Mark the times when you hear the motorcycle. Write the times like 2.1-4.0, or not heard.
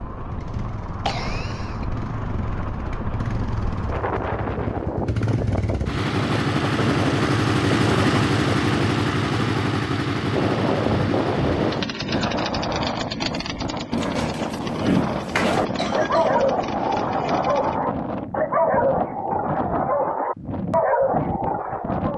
0.1-17.8.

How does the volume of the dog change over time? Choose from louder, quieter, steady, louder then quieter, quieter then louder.
steady.